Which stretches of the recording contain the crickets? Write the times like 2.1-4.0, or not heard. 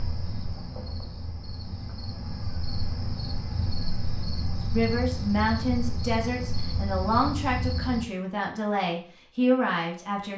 0.0-8.1.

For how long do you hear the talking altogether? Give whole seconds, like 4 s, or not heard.
6 s.